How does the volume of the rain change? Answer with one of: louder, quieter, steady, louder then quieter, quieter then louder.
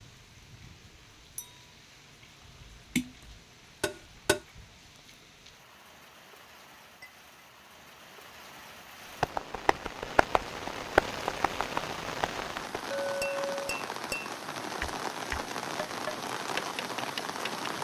louder.